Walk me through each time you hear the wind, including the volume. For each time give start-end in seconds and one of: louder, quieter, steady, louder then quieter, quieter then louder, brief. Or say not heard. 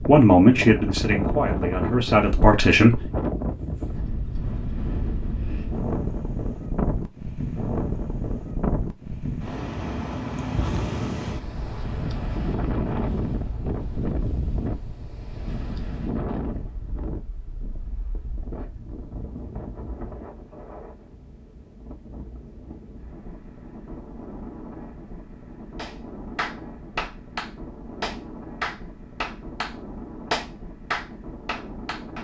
0.0-32.2 quieter.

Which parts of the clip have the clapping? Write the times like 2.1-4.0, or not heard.
25.8-32.2.